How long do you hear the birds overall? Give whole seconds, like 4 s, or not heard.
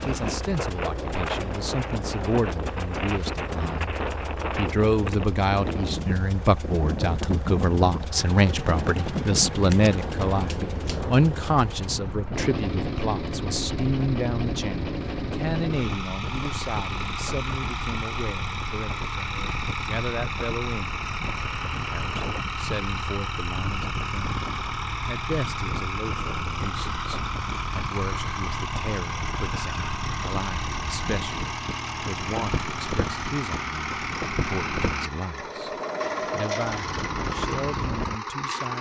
not heard.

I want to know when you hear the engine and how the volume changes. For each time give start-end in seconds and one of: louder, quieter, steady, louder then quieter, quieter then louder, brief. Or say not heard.
0.0-38.7 louder.